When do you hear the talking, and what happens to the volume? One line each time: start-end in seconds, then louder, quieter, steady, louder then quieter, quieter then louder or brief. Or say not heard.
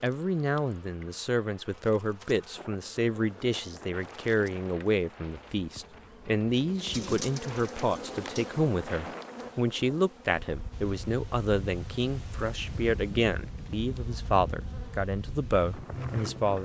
0.0-16.5 steady.